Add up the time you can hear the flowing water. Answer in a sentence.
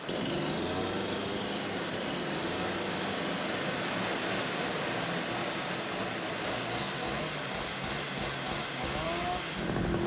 You can hear the flowing water for 10 seconds altogether.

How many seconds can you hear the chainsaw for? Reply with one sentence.
The chainsaw can be heard for 10 seconds in total.